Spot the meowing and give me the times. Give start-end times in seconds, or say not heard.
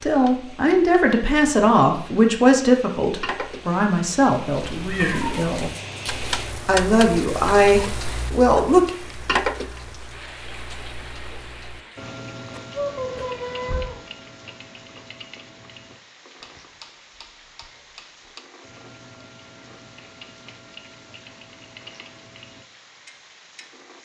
4.8-6.6, 12.5-14.0.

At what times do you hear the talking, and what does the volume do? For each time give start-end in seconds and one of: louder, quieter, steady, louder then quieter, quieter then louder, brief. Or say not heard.
0.0-5.7 quieter
6.7-8.9 brief.